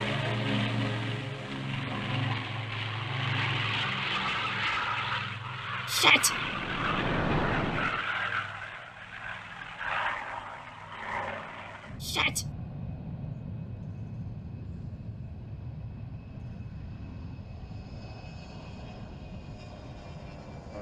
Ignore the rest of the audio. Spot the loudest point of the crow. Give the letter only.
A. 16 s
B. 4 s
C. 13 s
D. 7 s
D.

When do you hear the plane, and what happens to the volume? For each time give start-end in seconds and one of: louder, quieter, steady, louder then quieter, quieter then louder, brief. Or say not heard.
0.0-20.7 quieter.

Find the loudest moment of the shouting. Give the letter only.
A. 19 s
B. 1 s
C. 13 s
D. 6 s
D.